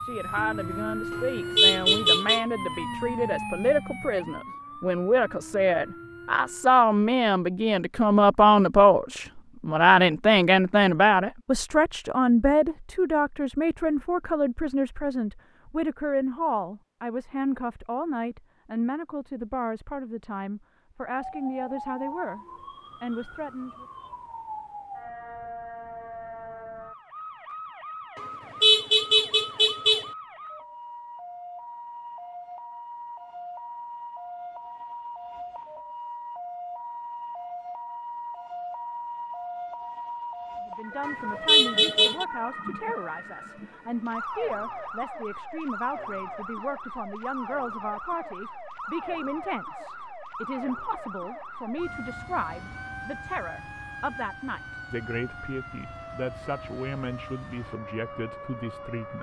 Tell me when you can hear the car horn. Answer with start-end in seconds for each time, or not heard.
1.1-2.5, 28.1-30.1, 41.0-42.2.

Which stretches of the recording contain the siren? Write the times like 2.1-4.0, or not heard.
0.0-6.8, 21.1-59.1.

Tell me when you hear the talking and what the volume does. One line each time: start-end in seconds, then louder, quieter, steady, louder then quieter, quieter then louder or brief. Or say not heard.
0.0-23.9 louder then quieter
40.6-59.1 steady.